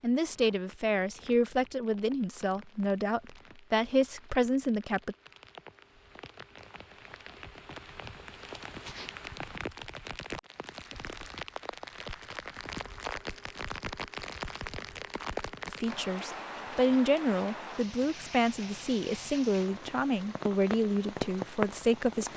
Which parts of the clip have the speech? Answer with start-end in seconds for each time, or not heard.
0.0-5.2, 15.7-22.3.